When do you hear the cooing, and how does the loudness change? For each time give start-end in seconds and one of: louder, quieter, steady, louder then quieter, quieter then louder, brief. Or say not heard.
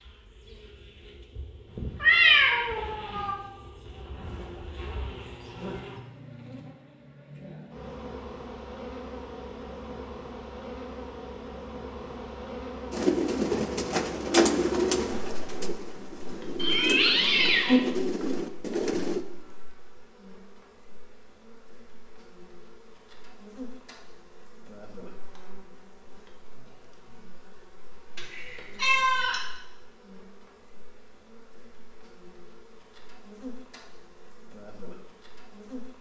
12.9-19.2 quieter then louder.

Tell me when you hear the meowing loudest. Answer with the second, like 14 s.
2 s.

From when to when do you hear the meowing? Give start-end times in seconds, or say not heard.
1.8-3.4, 16.6-17.8, 28.1-29.4.